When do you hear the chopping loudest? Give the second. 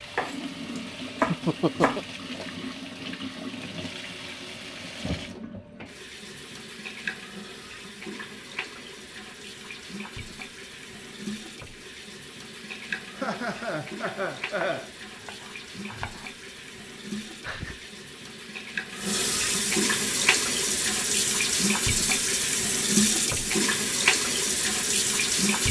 1 s.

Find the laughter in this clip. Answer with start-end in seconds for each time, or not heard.
1.2-2.0, 13.2-14.9, 17.2-17.9.